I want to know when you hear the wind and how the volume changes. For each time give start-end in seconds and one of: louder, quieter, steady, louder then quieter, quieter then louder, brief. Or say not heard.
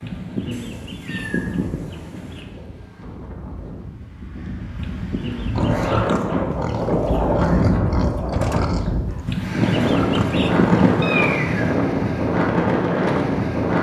0.0-13.7 louder.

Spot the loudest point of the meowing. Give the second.
11 s.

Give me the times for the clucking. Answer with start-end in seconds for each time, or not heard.
0.0-2.5, 4.8-7.2, 9.2-11.2.